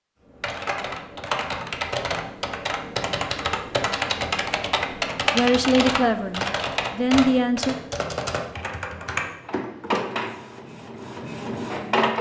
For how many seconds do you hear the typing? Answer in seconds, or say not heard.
10 s.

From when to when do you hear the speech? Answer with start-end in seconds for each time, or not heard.
5.3-7.8.